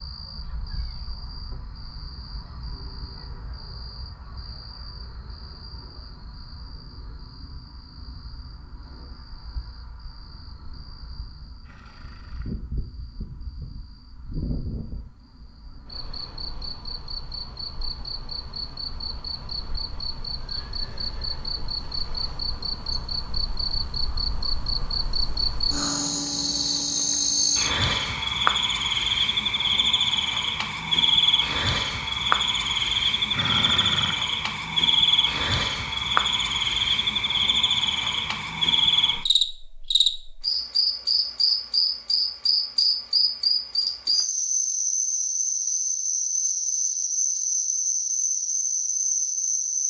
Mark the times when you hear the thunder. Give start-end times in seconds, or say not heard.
not heard.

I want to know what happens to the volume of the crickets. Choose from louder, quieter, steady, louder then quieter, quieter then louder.
louder.